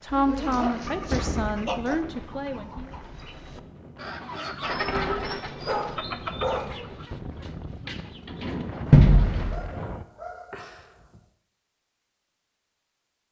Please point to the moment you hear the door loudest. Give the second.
9 s.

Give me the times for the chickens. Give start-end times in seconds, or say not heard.
0.3-9.6.